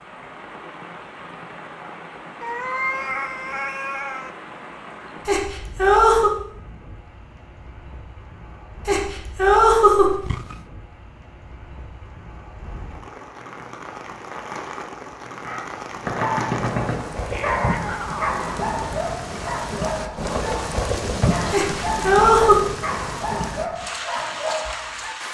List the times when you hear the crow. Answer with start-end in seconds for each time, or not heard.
not heard.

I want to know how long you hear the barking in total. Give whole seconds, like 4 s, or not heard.
10 s.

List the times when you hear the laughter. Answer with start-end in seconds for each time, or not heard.
5.2-6.3, 8.8-10.2, 21.5-22.6.